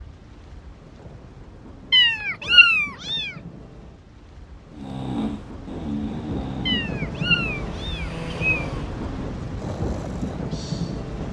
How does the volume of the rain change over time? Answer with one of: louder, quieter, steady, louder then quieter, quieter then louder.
louder.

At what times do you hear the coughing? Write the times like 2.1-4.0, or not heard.
not heard.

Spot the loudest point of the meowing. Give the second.
3 s.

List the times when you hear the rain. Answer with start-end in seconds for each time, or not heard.
0.0-11.2.